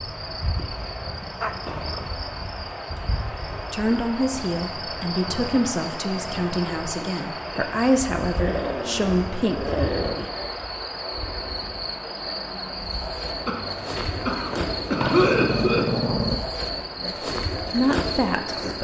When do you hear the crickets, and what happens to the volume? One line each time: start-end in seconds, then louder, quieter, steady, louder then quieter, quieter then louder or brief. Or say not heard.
0.0-18.7 louder.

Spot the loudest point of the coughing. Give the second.
15 s.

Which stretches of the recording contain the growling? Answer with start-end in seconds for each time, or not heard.
1.4-2.1, 8.3-10.3, 14.9-16.4.